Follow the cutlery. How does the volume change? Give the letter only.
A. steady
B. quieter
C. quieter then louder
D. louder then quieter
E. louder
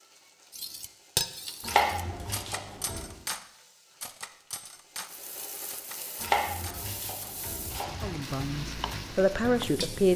B.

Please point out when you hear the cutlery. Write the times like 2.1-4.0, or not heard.
0.5-7.5.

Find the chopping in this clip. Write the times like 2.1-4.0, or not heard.
1.6-3.1, 6.2-8.1.